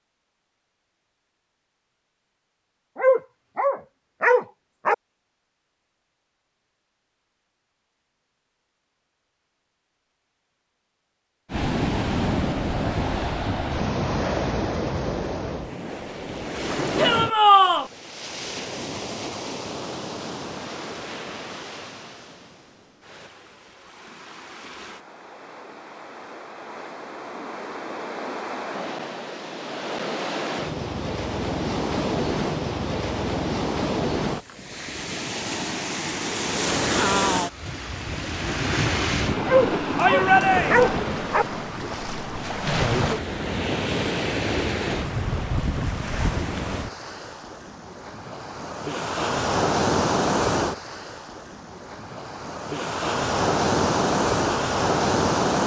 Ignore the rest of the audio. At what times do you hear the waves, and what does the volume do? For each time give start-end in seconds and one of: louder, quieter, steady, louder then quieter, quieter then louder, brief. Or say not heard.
11.5-55.6 quieter then louder.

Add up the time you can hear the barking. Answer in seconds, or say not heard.
4 s.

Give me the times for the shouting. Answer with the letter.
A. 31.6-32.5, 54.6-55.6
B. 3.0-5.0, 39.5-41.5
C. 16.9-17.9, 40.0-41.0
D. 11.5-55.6
C.